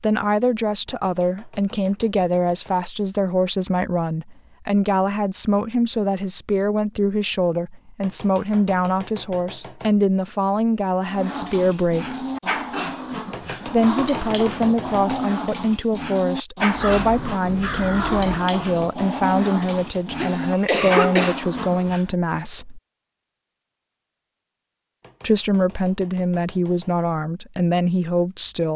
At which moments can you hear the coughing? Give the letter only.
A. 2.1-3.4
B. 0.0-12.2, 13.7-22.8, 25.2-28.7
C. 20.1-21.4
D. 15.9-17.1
C.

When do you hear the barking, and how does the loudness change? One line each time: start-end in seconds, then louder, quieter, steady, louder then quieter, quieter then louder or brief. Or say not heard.
11.1-22.1 steady.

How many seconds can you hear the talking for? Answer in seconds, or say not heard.
25 s.